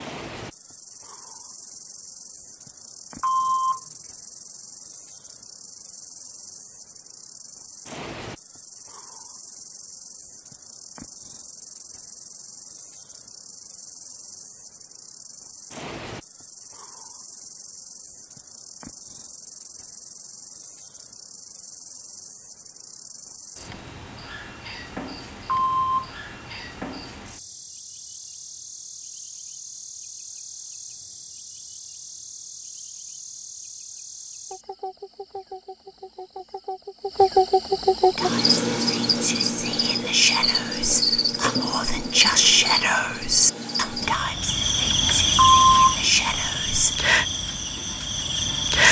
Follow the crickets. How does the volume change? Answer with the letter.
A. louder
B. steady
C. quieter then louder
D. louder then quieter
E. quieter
A.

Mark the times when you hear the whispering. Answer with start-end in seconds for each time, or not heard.
38.1-47.0.